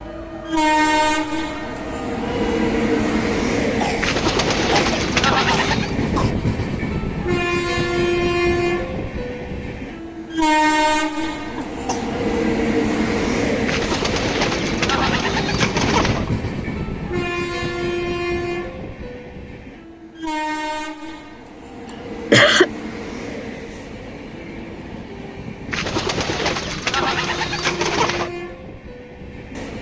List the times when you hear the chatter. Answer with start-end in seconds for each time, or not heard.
not heard.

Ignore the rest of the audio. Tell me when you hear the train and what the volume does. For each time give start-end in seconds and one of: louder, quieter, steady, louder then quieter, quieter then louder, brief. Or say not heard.
0.0-29.7 quieter.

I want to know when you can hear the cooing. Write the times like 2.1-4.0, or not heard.
4.0-6.0, 13.7-16.3, 25.7-28.3.